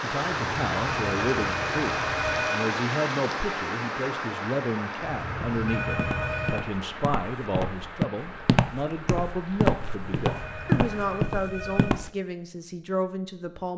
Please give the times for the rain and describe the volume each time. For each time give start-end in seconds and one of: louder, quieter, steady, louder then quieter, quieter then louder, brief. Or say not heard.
0.0-11.2 quieter.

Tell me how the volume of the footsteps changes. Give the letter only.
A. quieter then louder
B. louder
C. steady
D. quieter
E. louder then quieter
B.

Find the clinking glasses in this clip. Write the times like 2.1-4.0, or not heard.
not heard.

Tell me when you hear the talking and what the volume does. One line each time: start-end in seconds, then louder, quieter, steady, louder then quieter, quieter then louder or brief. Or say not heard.
0.0-13.7 steady.